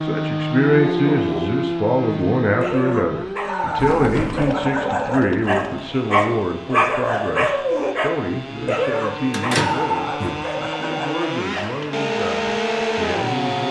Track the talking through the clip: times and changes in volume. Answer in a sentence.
The talking can be heard from 0.0 to 13.6 s, getting quieter.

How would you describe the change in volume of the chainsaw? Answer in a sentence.
The volume of the chainsaw goes down, then up.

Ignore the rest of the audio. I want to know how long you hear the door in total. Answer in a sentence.
You can hear the door for 2 seconds altogether.